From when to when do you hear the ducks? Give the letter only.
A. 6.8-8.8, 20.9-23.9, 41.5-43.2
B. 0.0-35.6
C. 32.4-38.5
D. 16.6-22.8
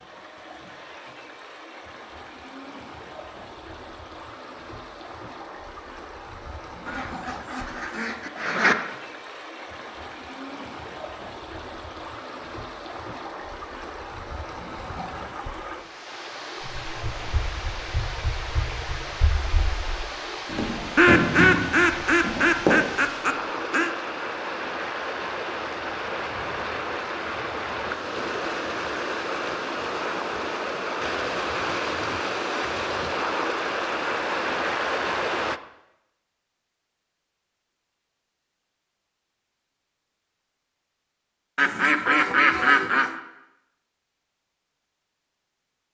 A.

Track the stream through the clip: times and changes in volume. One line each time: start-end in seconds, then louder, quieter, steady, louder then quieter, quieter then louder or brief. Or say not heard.
0.0-35.6 louder.